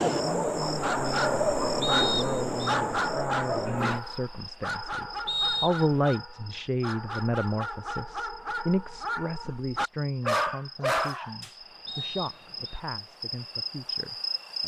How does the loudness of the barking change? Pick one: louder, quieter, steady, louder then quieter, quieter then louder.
quieter then louder.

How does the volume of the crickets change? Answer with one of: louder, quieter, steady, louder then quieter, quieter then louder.
quieter then louder.